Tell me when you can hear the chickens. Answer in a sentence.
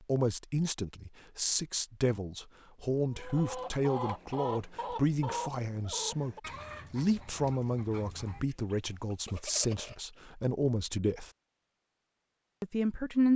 The chickens can be heard from 3.1 to 10.2 s.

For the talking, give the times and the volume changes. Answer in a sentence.
You can hear the talking from 0.1 to 11.3 s, at a steady volume; and briefly from 12.6 to 13.3 s.